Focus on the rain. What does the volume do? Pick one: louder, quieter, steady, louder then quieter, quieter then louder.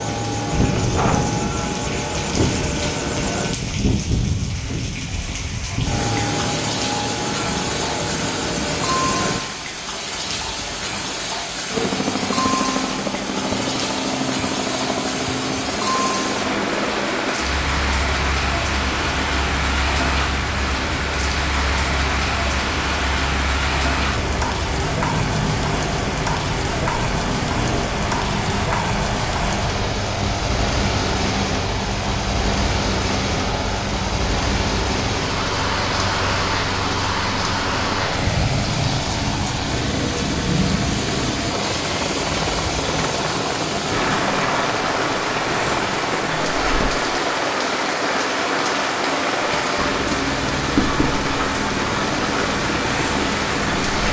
steady.